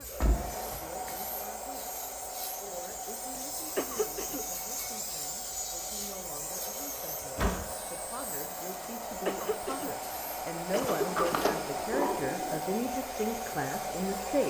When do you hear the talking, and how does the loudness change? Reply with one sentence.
The talking can be heard from 0.0 to 14.4 s, getting louder.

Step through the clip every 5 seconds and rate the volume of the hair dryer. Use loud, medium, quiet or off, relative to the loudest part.
medium, medium, loud.